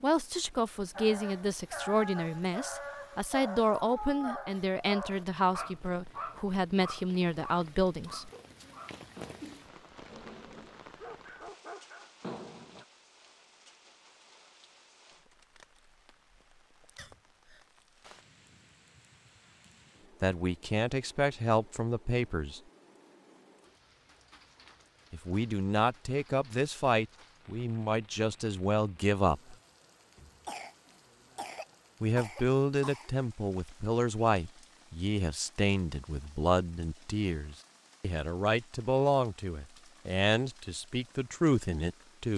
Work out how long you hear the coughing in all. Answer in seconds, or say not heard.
5 s.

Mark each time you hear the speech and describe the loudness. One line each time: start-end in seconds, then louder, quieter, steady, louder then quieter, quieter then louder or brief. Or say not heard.
0.0-8.3 steady
20.2-22.6 brief
25.1-29.6 steady
32.0-42.3 steady.